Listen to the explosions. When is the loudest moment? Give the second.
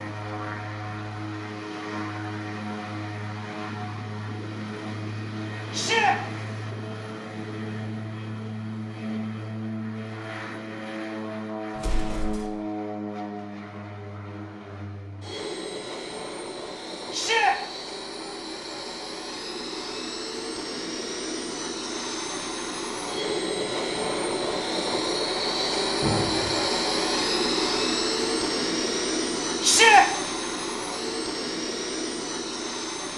26 s.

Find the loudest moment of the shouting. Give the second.
30 s.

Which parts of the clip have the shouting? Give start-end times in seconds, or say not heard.
5.7-6.2, 17.1-17.6, 29.6-30.1.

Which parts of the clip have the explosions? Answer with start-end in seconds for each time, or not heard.
11.8-12.4, 26.0-26.7.